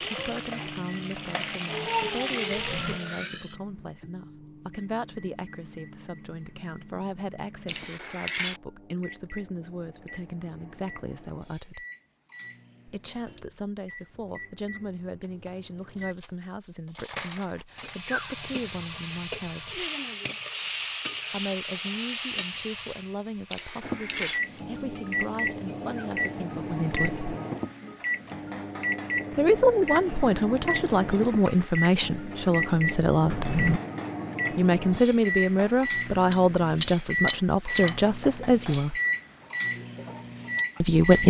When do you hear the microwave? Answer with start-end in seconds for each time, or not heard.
0.0-16.1, 23.8-41.2.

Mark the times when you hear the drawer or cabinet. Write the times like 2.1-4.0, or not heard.
2.5-3.0, 33.3-33.8.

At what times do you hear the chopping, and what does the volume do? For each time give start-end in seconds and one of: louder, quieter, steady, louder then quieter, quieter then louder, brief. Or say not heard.
not heard.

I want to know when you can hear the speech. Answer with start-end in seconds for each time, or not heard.
0.0-11.8, 12.8-19.9, 21.3-27.3, 29.4-33.6, 34.5-39.0, 40.8-41.2.